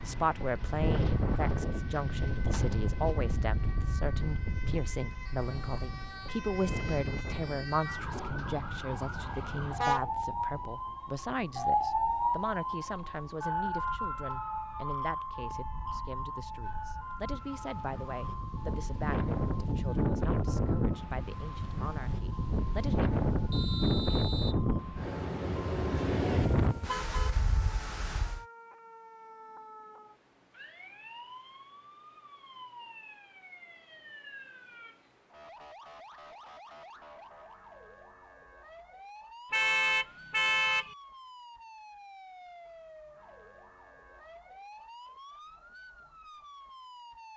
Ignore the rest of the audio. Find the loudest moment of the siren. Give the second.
12 s.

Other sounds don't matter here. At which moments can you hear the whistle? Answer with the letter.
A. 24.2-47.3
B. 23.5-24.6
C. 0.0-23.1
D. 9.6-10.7
B.